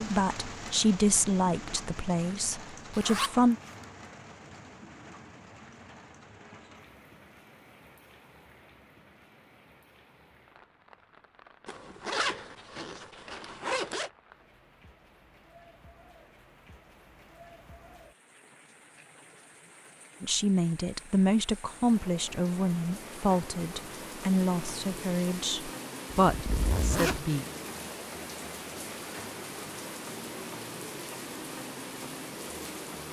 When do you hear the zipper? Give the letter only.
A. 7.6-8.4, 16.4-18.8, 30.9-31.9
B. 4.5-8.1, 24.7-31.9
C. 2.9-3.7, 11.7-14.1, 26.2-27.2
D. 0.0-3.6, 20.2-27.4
C.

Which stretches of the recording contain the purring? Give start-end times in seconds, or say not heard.
not heard.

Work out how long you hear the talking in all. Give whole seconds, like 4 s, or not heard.
11 s.